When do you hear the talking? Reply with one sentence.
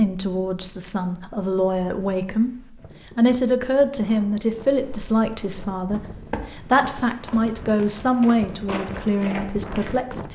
The talking can be heard from 0.0 to 10.3 s.